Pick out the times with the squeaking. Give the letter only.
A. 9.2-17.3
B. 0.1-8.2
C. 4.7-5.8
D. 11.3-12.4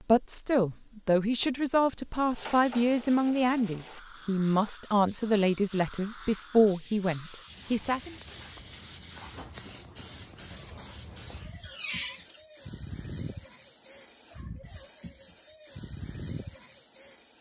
D.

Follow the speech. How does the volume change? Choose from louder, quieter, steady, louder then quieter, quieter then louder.
steady.